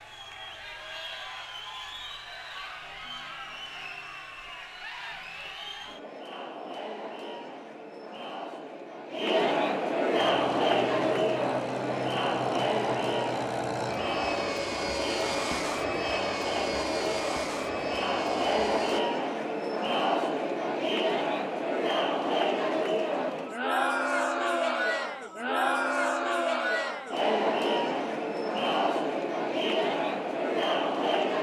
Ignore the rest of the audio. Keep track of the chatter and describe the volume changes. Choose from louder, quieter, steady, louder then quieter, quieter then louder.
louder.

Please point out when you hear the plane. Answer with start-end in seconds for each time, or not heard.
10.2-19.0.